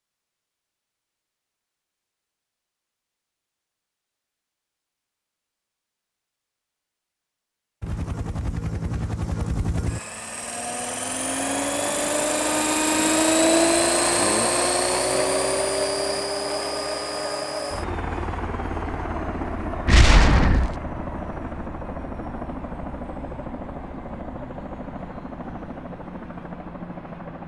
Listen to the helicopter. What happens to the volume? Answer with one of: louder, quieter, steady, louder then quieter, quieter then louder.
louder then quieter.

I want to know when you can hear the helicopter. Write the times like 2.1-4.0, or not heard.
7.8-27.4.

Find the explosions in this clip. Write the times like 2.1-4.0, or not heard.
19.9-20.8.